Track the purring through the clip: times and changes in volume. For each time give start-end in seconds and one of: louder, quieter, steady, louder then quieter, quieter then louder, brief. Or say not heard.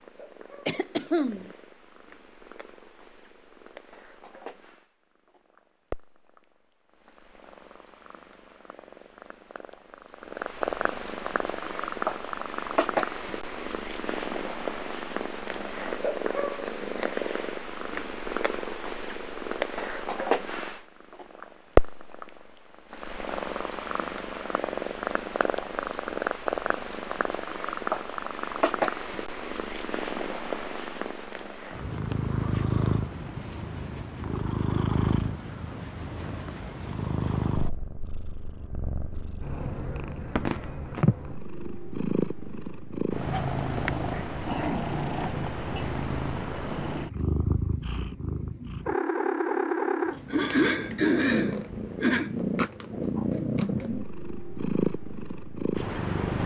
0.0-56.4 louder.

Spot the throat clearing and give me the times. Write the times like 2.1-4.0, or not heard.
0.7-1.5, 50.3-52.3.